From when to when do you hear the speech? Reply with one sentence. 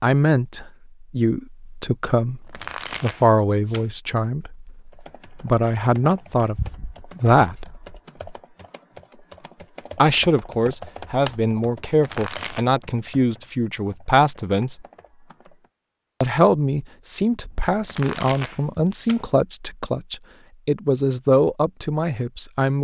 You can hear the speech from 0.0 to 6.5 s, from 7.2 to 7.8 s, from 9.9 to 14.8 s and from 16.2 to 22.7 s.